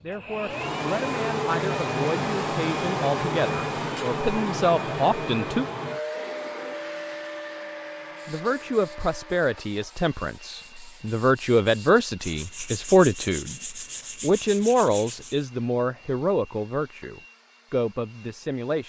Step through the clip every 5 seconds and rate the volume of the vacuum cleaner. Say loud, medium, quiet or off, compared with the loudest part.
loud, medium, quiet, quiet.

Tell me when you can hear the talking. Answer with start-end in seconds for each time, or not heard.
0.0-5.7, 8.2-18.8.